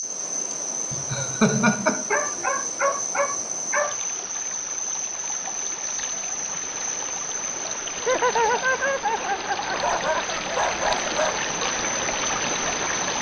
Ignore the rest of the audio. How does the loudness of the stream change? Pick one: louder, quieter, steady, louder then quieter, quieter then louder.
louder.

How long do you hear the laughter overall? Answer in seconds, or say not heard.
4 s.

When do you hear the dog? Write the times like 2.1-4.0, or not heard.
2.1-4.0, 9.7-11.4.